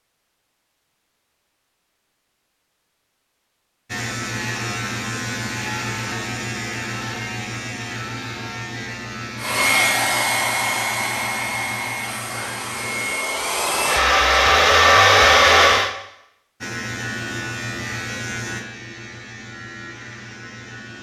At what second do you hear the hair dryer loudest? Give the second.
15 s.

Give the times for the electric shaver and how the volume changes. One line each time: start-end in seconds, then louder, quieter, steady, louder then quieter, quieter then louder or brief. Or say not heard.
3.9-13.2 quieter
16.6-20.9 quieter.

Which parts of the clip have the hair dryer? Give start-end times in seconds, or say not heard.
9.3-15.9.